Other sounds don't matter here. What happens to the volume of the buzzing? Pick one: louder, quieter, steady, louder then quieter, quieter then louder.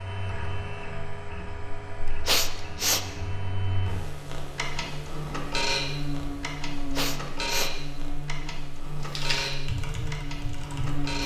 louder.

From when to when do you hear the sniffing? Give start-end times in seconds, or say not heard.
2.2-3.0, 7.0-7.7.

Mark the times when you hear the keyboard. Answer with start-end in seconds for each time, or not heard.
9.0-11.1.